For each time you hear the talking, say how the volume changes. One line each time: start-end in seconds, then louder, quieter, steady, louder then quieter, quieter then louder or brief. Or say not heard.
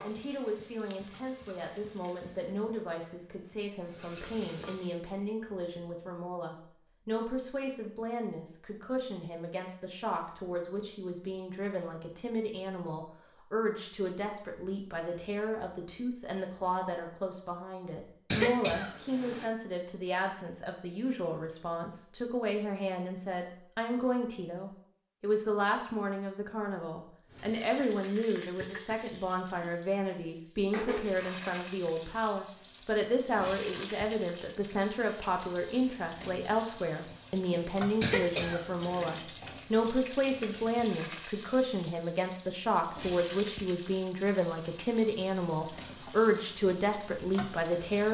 0.0-48.0 louder.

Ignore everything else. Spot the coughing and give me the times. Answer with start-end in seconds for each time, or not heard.
18.3-19.4, 38.0-39.2.